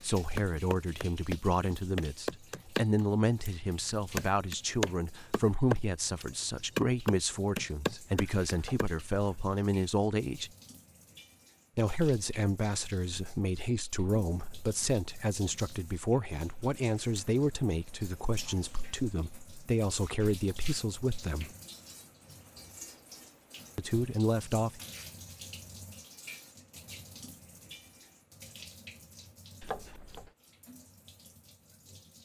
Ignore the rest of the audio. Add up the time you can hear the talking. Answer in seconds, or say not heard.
21 s.